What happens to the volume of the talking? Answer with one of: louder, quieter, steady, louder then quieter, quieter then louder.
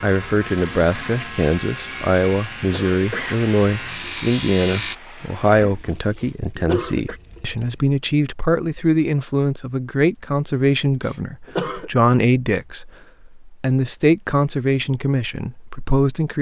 steady.